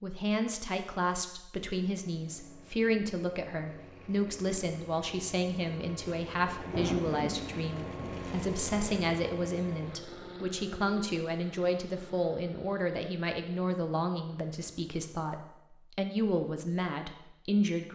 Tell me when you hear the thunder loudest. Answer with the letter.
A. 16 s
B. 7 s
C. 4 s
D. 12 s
B.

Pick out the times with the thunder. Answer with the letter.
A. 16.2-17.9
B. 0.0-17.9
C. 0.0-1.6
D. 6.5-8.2
D.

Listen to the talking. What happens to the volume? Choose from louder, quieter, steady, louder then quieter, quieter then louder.
steady.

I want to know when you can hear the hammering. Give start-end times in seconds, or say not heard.
not heard.